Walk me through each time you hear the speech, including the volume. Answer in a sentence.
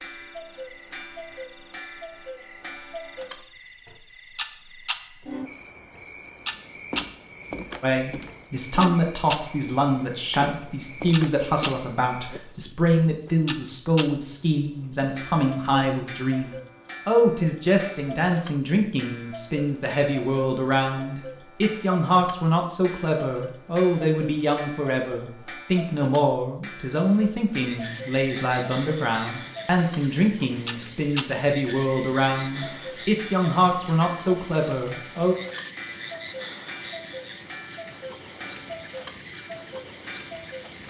The speech can be heard from 7.8 to 35.4 s, at a steady volume.